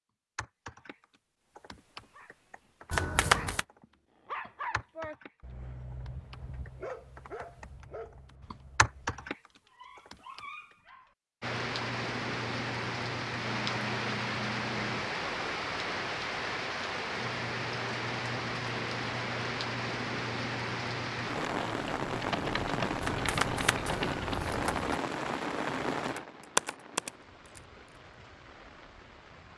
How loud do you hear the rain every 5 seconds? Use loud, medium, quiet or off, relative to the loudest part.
off, off, loud, loud, loud, medium.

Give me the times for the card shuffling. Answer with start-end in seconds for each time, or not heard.
2.9-3.6, 23.0-25.0.